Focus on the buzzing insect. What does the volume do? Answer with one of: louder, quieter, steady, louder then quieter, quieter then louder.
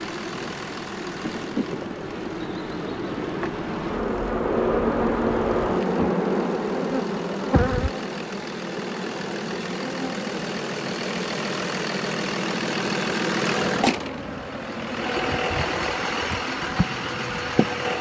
louder then quieter.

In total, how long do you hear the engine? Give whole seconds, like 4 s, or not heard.
18 s.